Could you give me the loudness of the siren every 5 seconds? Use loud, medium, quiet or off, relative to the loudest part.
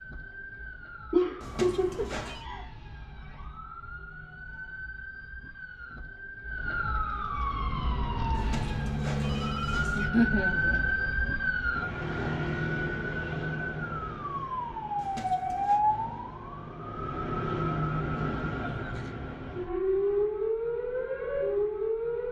quiet, medium, loud, loud, loud.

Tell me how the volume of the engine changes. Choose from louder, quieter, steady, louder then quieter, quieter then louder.
louder then quieter.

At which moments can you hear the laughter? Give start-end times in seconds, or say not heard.
1.1-2.6, 9.9-10.9, 18.1-19.3.